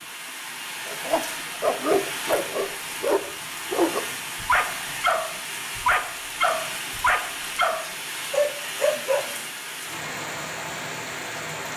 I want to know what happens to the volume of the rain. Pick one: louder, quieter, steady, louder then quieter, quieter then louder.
steady.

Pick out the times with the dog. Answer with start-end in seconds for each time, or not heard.
0.8-9.3.